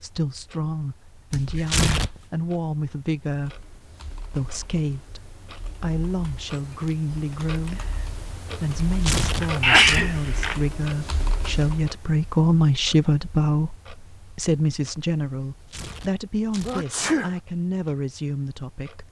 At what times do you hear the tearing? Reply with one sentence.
The tearing can be heard from 1.3 to 2.3 s, from 8.8 to 10.1 s and from 15.5 to 16.9 s.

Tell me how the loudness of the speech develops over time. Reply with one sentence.
The volume of the speech goes up, then down.